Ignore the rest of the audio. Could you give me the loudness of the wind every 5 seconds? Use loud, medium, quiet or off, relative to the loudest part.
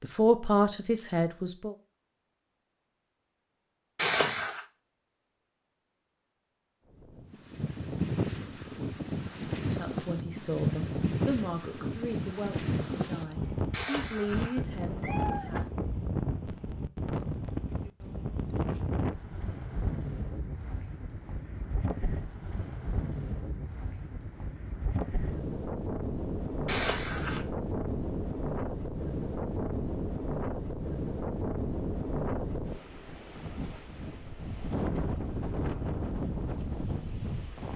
off, loud, loud, loud, medium, loud, loud, loud.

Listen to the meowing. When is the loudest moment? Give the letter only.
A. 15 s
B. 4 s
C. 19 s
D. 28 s
B.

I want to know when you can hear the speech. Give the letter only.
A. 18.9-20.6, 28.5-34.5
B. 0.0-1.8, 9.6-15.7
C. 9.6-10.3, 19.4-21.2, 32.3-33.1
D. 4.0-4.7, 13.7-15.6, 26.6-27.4
B.